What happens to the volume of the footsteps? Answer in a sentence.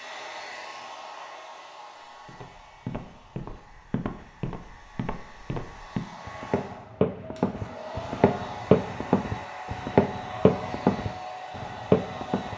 The volume of the footsteps goes up.